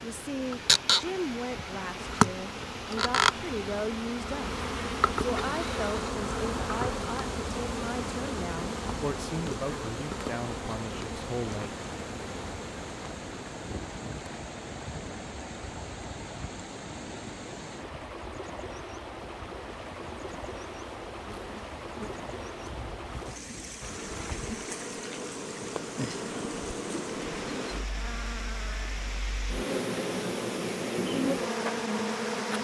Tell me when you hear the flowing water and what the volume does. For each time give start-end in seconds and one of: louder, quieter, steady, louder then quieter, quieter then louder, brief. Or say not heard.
0.0-32.6 steady.